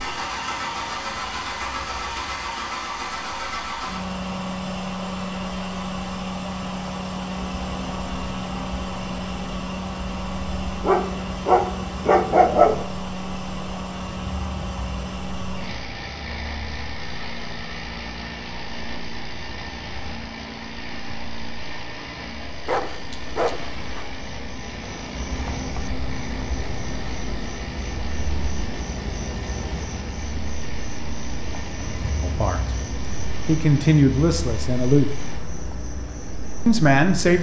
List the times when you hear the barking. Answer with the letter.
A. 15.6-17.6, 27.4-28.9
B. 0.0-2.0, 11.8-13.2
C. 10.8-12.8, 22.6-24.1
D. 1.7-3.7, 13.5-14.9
C.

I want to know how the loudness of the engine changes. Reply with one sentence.
The loudness of the engine goes down.